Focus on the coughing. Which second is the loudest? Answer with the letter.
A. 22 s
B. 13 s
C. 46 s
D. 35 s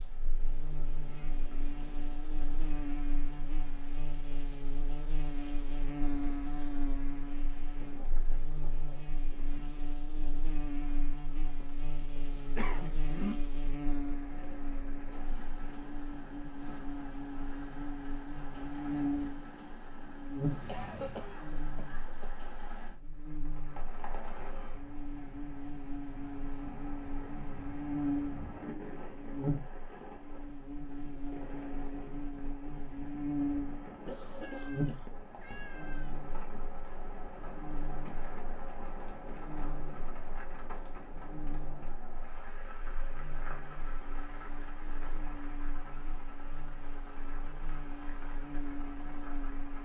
B.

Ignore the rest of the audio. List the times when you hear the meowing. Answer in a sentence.
The meowing can be heard from 0.9 to 2.2 s, from 20.6 to 21.4 s and from 34.4 to 36.1 s.